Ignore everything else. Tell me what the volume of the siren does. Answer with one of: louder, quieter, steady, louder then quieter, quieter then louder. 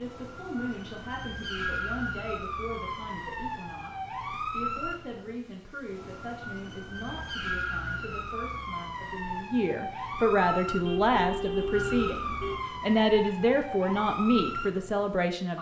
steady.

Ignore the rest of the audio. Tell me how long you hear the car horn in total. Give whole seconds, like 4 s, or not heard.
2 s.